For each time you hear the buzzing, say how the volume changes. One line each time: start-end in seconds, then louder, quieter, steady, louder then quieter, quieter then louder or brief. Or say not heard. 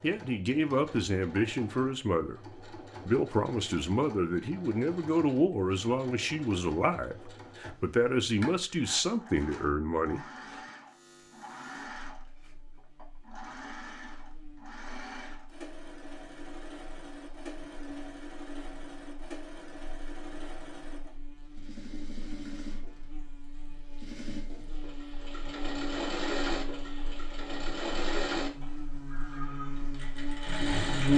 10.8-31.1 louder.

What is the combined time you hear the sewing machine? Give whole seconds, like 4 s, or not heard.
31 s.